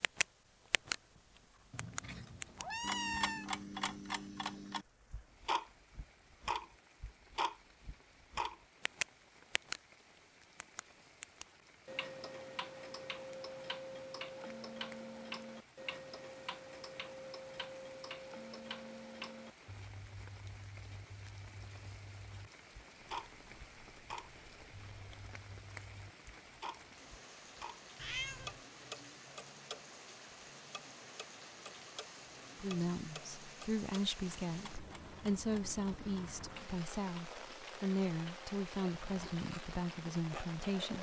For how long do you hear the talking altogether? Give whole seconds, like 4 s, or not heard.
8 s.